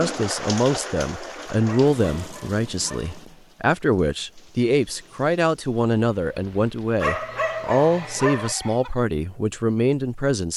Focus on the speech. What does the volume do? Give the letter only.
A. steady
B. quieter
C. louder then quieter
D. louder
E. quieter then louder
A.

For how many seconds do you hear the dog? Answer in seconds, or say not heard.
3 s.